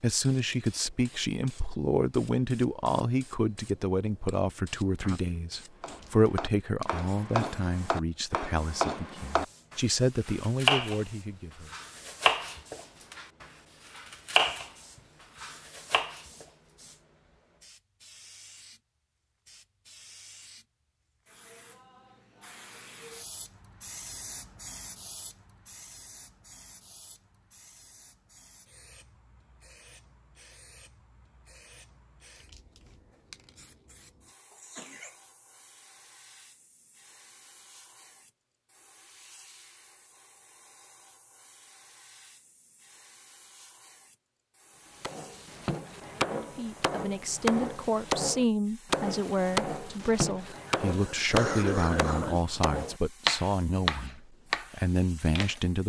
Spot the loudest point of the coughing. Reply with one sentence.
The volume of the coughing peaks at 52 seconds.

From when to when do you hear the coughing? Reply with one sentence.
You can hear the coughing from 5.0 to 5.6 s, from 34.5 to 35.1 s and from 50.4 to 52.4 s.